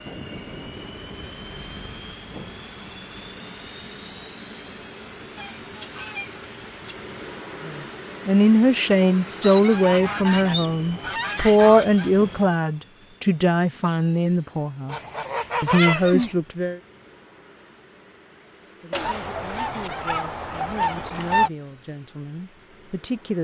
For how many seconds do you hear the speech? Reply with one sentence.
The speech can be heard for 13 seconds in total.